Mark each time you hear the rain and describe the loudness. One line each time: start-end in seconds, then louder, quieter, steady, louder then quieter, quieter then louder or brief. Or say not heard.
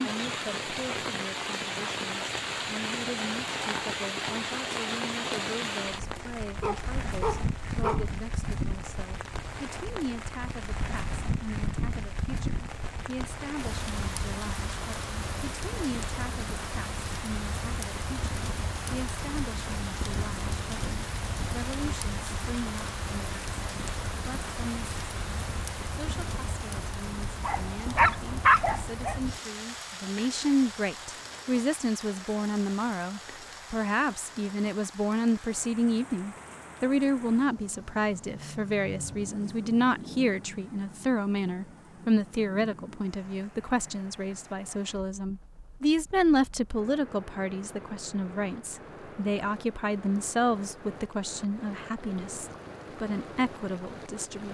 0.0-54.4 quieter.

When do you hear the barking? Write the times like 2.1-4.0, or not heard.
6.6-8.1, 27.4-29.2.